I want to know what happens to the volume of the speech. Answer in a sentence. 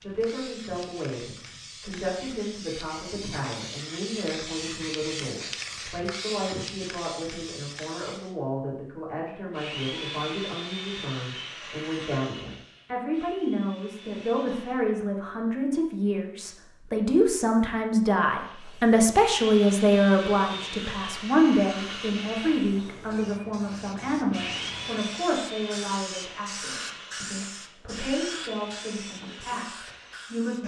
The volume of the speech goes up, then down.